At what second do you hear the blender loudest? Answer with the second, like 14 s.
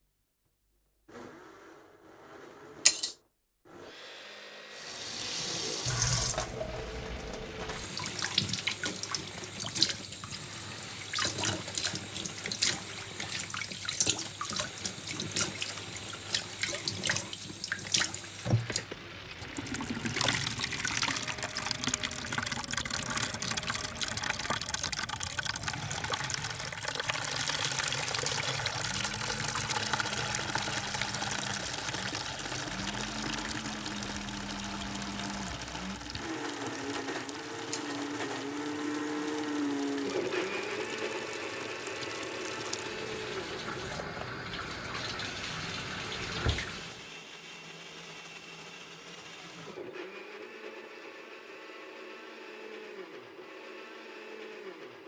40 s.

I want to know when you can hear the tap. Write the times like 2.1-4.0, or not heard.
4.7-47.0.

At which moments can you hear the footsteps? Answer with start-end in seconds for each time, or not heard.
not heard.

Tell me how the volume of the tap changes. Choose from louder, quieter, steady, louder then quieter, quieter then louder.
quieter.